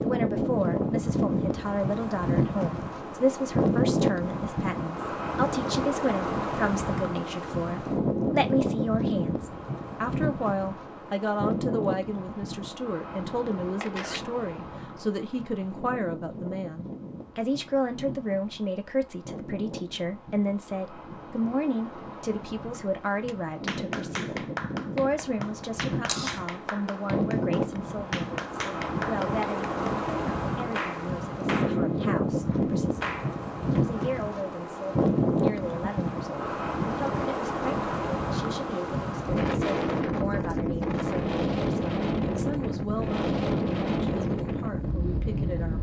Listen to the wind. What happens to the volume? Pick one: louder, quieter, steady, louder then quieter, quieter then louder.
quieter then louder.